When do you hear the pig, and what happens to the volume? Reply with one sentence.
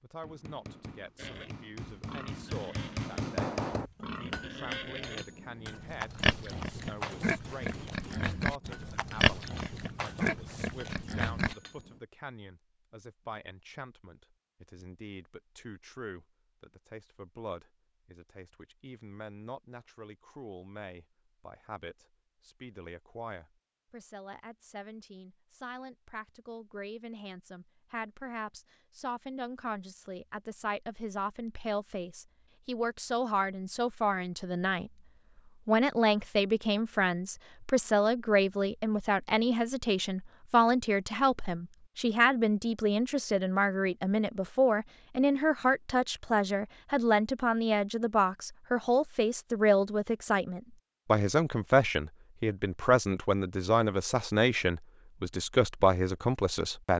You can hear the pig from 1.1 to 11.6 s, getting louder.